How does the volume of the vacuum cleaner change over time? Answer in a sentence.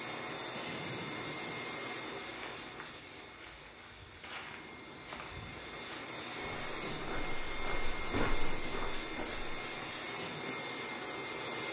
The volume of the vacuum cleaner goes down, then up.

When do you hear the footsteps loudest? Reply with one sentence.
The loudest moment of the footsteps is at 8 seconds.